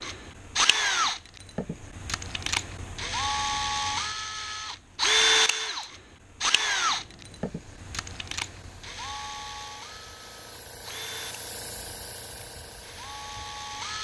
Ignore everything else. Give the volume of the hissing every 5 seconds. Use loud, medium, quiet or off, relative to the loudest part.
off, medium, loud.